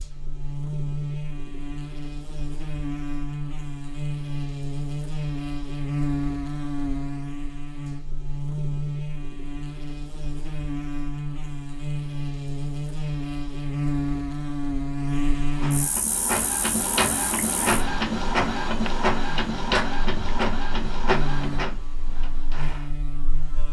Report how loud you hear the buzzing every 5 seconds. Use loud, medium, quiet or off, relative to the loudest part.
loud, loud, loud, loud, medium.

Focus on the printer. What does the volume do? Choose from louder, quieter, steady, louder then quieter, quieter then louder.
quieter.